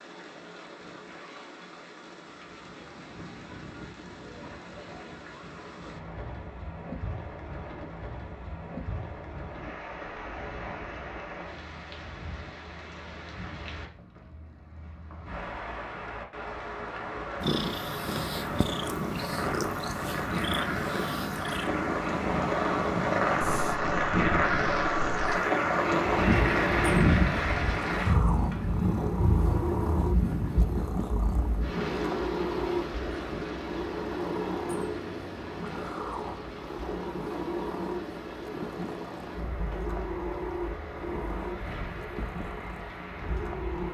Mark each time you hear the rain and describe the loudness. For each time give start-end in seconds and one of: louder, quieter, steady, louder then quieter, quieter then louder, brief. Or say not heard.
0.0-43.9 louder then quieter.